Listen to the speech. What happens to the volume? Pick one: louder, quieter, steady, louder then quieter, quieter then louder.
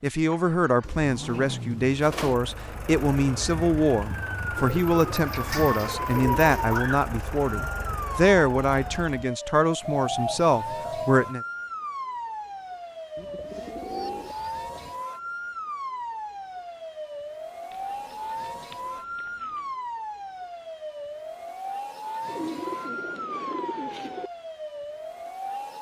steady.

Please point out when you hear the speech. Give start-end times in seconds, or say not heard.
0.0-11.4.